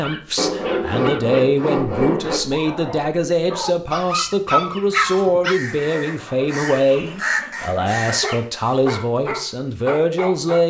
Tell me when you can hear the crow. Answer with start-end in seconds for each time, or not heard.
4.8-8.4.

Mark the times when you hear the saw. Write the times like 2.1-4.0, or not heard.
0.3-2.4, 5.8-8.2.